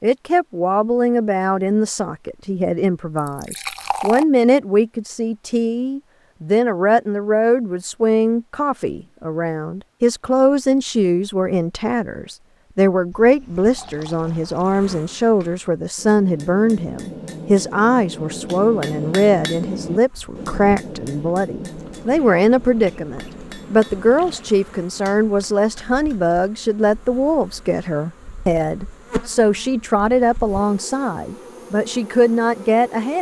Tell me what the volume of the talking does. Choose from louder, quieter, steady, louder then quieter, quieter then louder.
steady.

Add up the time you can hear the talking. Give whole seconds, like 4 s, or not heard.
33 s.